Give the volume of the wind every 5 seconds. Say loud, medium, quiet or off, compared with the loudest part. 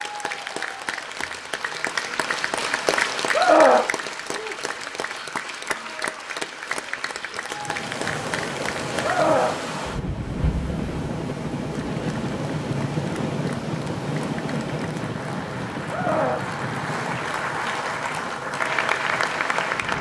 off, loud, loud, medium.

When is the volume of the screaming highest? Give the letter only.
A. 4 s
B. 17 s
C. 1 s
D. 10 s
A.